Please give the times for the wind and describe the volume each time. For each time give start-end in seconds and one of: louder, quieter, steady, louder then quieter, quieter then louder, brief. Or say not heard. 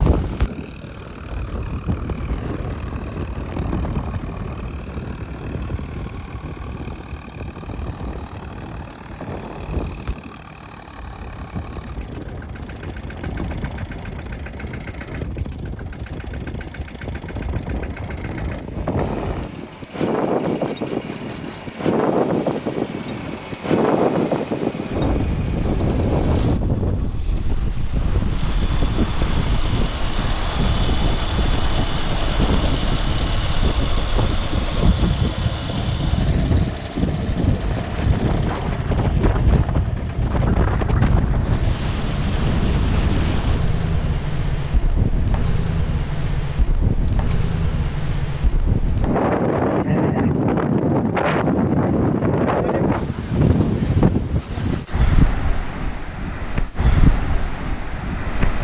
0.0-58.6 louder.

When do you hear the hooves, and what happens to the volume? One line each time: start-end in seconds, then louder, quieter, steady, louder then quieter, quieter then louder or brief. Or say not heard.
not heard.